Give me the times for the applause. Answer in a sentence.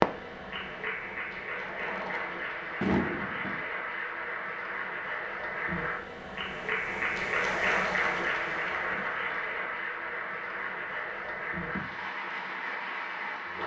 The applause can be heard from 0.0 to 13.6 s.